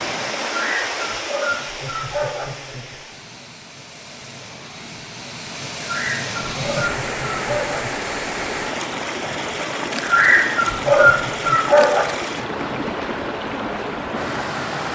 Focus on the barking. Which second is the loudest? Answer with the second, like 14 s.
11 s.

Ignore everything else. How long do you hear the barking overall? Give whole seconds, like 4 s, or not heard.
6 s.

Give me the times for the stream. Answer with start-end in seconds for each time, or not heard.
0.0-14.8.